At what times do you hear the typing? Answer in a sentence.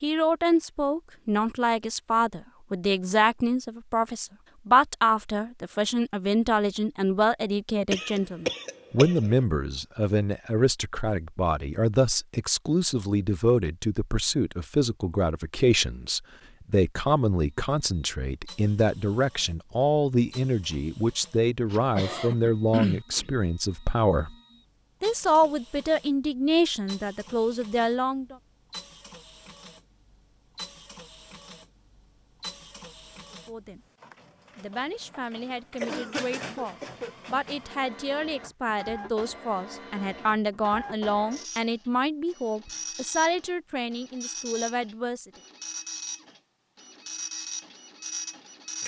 The typing can't be heard in this clip.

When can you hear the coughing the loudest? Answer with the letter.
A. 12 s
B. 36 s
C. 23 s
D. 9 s
C.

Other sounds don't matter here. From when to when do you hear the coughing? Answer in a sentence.
You can hear the coughing from 7.9 to 9.3 s, from 21.8 to 23.1 s and from 35.5 to 37.1 s.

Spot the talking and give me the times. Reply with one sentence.
You can hear the talking from 0.0 to 24.4 s, from 25.0 to 28.4 s, from 33.3 to 33.8 s and from 34.5 to 45.4 s.